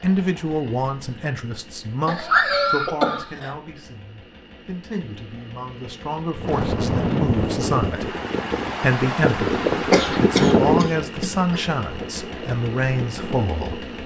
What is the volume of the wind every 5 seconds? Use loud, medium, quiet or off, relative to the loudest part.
off, loud, loud.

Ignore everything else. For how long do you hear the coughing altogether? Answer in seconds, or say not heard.
3 s.